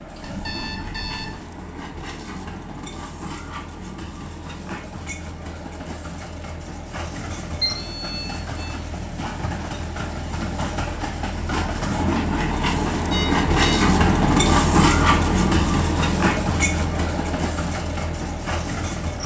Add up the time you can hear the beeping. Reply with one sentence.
The beeping can be heard for 3 seconds in total.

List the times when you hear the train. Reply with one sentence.
The train can be heard from 0.0 to 19.2 s.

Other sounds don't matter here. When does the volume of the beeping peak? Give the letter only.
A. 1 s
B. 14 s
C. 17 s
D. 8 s
D.